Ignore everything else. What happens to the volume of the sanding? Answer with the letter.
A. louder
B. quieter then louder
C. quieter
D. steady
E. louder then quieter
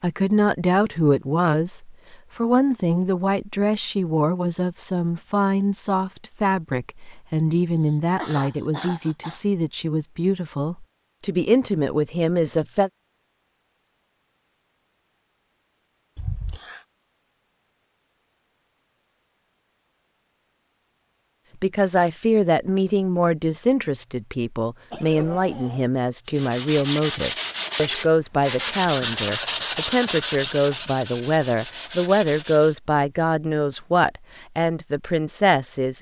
C.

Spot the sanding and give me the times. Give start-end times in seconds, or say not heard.
26.2-32.8.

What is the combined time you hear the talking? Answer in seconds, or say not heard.
27 s.